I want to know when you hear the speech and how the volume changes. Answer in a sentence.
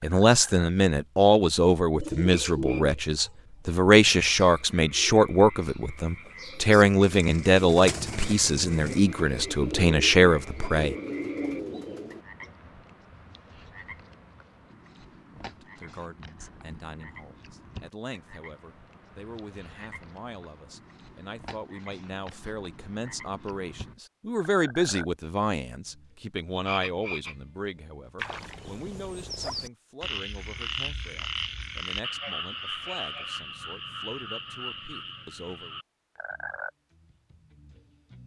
The speech can be heard from 0.0 to 10.9 s, at a steady volume; and from 15.4 to 35.8 s, getting louder then quieter.